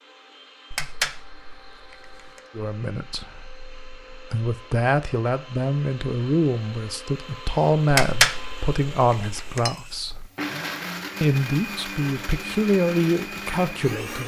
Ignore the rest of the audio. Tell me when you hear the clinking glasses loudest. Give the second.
8 s.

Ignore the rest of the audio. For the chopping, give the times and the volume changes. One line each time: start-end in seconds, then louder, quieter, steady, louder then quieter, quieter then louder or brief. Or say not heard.
not heard.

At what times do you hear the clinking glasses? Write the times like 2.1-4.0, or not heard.
0.7-2.4, 7.9-9.8.